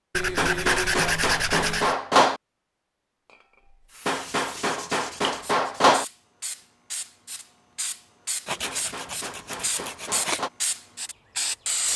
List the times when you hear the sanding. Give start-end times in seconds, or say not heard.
0.1-1.9, 4.1-5.8, 8.4-10.4.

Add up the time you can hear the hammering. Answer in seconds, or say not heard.
6 s.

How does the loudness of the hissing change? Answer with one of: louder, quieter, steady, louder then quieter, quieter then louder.
louder.